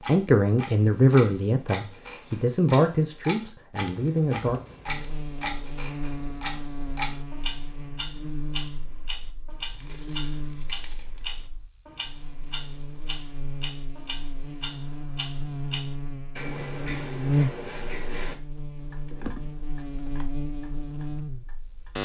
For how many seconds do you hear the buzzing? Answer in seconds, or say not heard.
17 s.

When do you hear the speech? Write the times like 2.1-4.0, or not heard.
0.1-4.6.